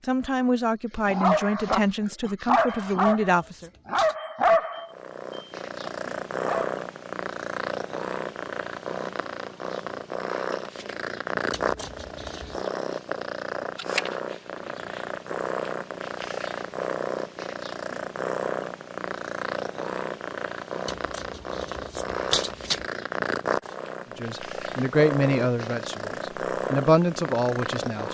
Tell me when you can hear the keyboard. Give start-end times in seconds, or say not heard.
not heard.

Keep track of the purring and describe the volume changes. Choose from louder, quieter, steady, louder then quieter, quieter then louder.
steady.